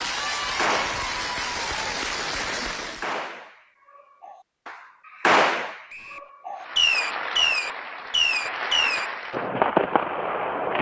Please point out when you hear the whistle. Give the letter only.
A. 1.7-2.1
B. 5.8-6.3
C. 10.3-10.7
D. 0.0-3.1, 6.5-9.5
B.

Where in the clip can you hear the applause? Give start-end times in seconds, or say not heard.
0.0-3.1, 6.5-9.5.